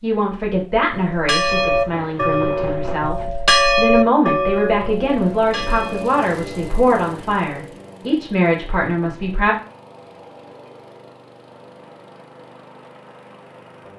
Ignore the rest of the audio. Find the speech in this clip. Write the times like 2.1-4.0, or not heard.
0.0-9.6.